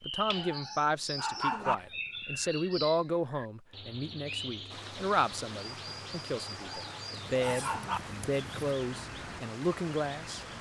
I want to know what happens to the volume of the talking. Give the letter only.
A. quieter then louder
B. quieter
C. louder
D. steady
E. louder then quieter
D.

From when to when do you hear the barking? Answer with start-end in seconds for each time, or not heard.
0.3-1.8, 6.5-8.0.